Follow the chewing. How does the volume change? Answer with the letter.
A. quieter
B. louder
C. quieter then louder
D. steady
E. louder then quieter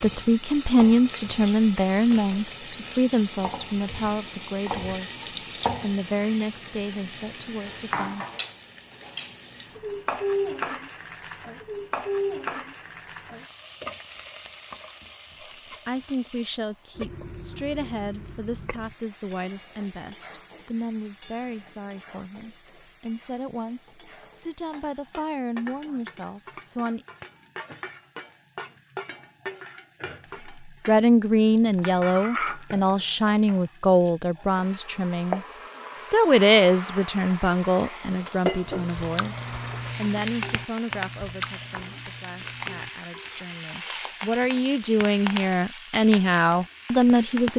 A.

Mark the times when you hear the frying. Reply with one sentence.
You can hear the frying from 0.0 to 47.5 s.